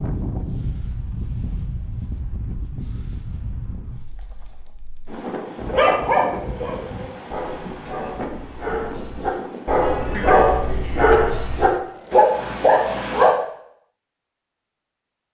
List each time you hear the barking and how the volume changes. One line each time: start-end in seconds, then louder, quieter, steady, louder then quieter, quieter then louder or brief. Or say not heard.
5.6-13.3 quieter then louder.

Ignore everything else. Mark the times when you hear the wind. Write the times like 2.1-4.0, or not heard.
0.0-11.8.